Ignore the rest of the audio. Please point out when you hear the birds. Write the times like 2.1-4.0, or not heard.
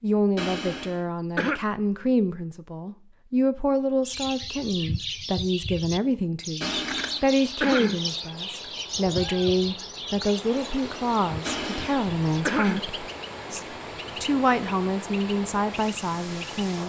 4.0-16.8.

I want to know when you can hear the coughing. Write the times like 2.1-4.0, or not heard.
0.3-1.6, 6.6-8.0, 11.4-12.8.